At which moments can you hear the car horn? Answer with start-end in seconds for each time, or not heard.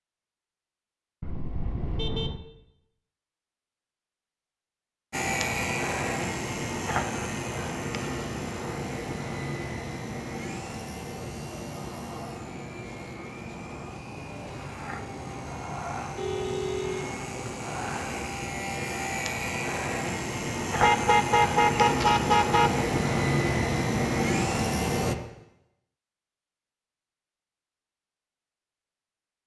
1.2-2.4, 16.1-17.1, 20.8-22.9.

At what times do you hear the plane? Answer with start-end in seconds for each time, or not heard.
5.1-25.1.